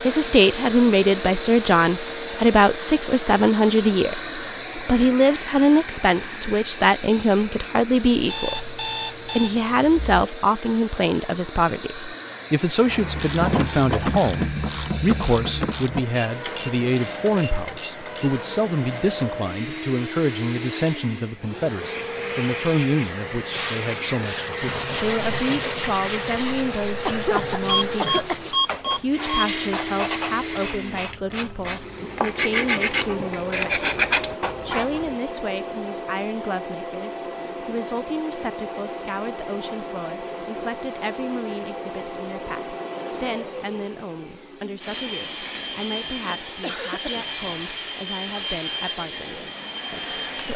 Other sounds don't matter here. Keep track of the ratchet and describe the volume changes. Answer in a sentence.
The volume of the ratchet goes down.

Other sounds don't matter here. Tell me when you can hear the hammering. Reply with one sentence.
You can't hear the hammering here.